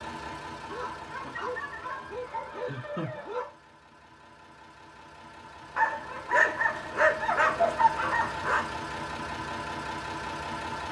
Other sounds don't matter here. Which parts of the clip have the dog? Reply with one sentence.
You can hear the dog from 0.7 to 3.5 s and from 5.8 to 8.7 s.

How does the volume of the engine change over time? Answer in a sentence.
The loudness of the engine goes down, then up.